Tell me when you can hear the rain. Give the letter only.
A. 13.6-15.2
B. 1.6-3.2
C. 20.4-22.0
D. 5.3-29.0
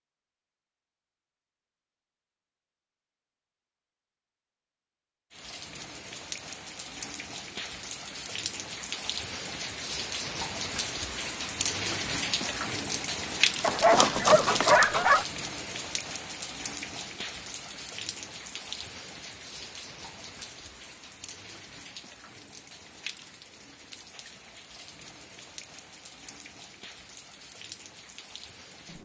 D.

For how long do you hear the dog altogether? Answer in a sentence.
You can hear the dog for 2 seconds altogether.